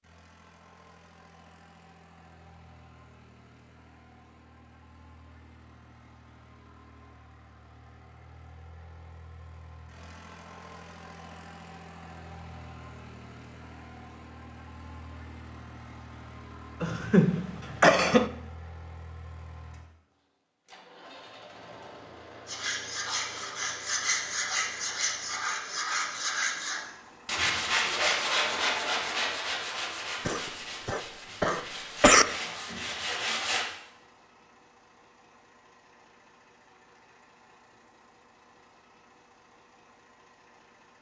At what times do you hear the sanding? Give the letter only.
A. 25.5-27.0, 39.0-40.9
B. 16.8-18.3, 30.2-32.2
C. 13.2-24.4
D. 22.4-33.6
D.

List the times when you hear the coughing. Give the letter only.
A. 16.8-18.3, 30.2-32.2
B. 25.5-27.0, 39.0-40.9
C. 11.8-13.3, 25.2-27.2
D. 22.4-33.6
A.